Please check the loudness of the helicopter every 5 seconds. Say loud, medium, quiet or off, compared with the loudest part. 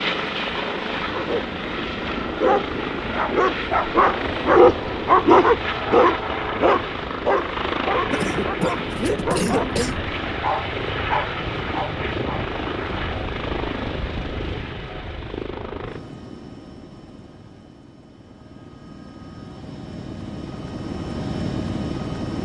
loud, loud, loud, medium, loud.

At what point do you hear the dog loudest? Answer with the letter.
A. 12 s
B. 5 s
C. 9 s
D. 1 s
B.